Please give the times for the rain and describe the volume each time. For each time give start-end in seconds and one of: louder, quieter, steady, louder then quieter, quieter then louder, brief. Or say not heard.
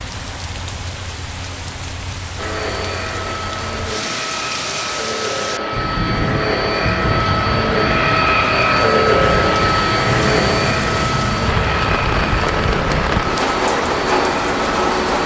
0.0-15.2 louder.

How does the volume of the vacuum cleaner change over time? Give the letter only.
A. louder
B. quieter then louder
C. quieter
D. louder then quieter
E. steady
D.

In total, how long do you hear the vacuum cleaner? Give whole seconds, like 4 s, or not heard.
13 s.